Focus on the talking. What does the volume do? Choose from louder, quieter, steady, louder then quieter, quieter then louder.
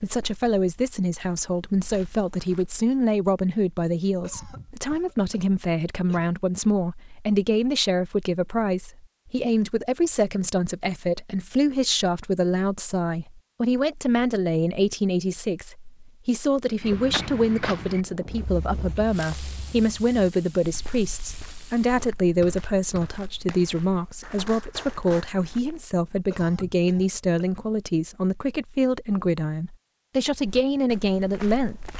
steady.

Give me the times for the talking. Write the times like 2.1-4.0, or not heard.
0.0-31.9.